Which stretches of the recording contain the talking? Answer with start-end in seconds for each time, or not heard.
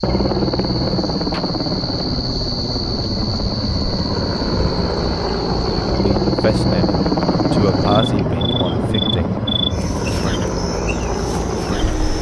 6.0-9.4.